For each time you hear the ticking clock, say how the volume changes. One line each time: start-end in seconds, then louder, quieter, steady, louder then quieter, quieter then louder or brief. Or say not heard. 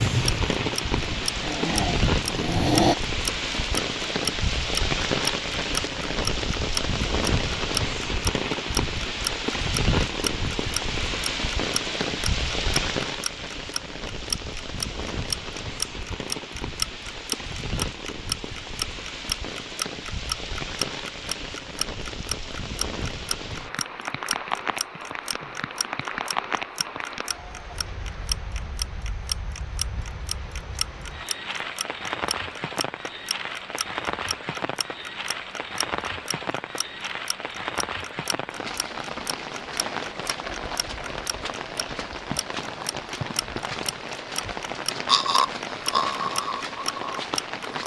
0.1-47.8 quieter.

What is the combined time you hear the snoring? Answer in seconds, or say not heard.
6 s.